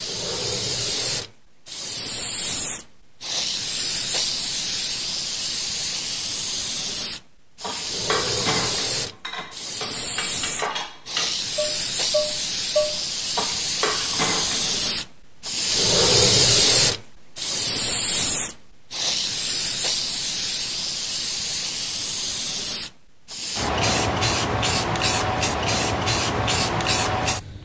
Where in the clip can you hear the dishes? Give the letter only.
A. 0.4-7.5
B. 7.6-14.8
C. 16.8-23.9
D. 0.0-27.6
B.